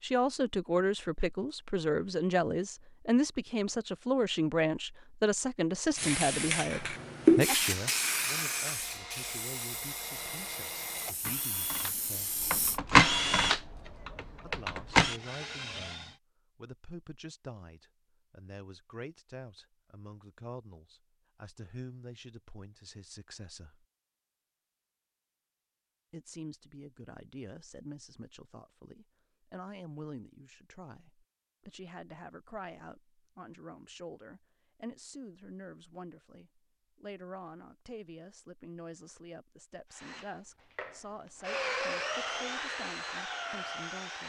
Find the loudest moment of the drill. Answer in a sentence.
The volume of the drill peaks at 13 seconds.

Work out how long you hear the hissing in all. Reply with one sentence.
You can hear the hissing for 7 seconds altogether.